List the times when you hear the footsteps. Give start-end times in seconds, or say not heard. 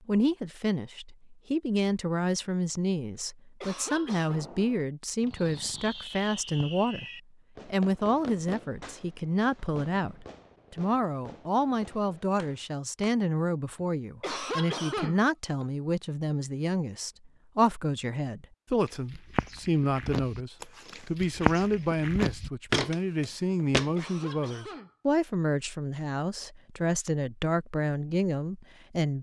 18.9-23.9.